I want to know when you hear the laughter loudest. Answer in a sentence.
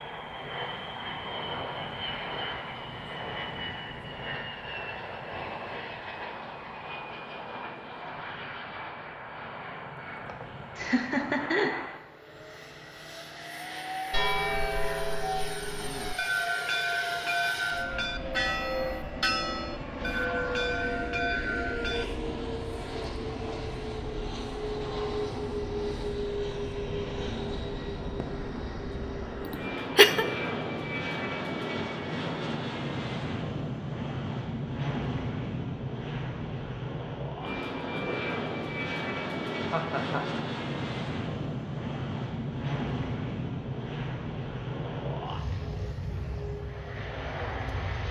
The volume of the laughter peaks at 30 seconds.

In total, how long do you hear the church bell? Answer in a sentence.
The church bell can be heard for 8 seconds in total.